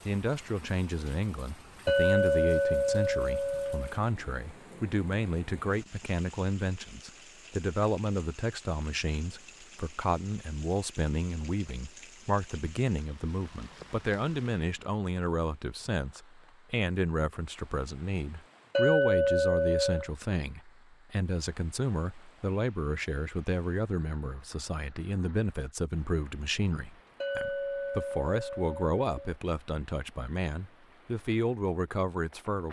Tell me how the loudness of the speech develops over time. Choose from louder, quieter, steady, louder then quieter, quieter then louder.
steady.